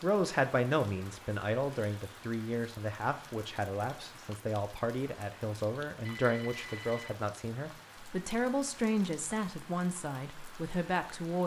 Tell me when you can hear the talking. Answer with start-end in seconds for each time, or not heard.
0.0-11.4.